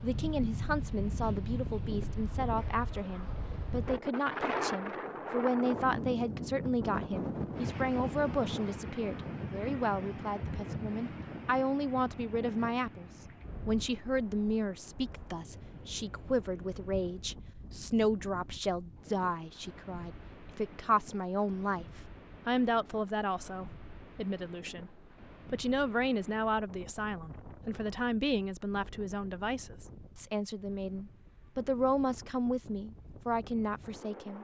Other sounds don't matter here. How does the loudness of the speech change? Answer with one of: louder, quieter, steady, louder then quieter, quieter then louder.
steady.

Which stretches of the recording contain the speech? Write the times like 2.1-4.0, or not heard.
0.0-21.9, 22.4-34.3.